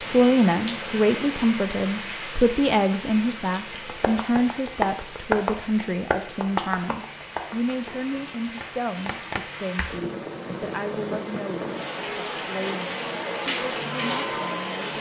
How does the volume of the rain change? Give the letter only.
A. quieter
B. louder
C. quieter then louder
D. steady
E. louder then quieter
C.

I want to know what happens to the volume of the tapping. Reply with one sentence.
The volume of the tapping goes down, then up.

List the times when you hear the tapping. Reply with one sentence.
You can hear the tapping from 3.9 to 10.1 s.